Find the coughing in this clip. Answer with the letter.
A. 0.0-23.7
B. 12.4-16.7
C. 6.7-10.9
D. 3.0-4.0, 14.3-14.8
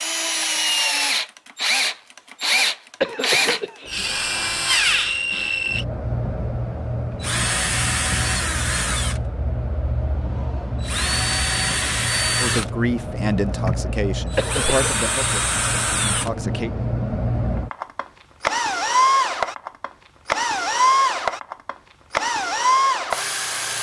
D.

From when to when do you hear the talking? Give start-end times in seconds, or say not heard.
12.4-16.7.